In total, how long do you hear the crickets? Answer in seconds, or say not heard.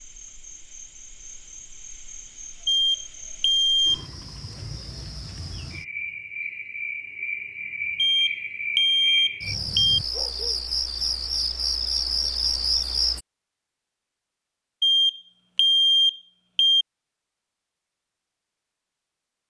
13 s.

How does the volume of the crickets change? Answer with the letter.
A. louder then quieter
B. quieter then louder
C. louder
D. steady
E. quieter
C.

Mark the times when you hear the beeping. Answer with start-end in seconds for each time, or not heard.
2.6-4.0, 8.0-10.0, 14.8-16.9.